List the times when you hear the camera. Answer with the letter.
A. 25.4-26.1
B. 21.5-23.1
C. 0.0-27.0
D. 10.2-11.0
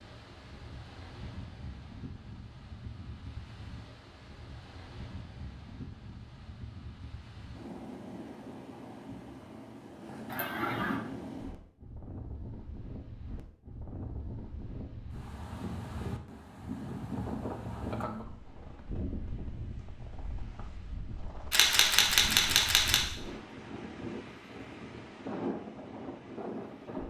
B.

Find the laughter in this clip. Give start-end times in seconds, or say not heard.
10.2-11.0.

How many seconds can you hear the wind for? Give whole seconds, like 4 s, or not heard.
27 s.